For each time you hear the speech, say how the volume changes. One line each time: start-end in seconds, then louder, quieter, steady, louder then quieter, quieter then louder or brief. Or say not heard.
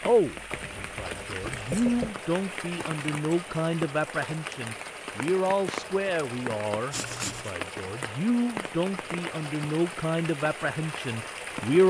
0.0-11.8 steady.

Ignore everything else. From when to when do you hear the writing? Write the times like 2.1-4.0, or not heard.
0.5-2.1, 6.9-7.5.